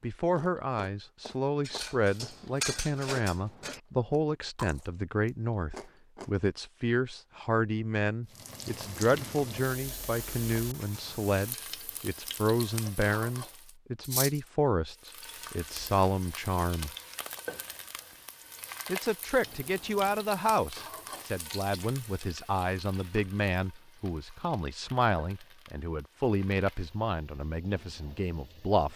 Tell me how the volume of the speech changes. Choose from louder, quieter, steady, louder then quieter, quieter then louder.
steady.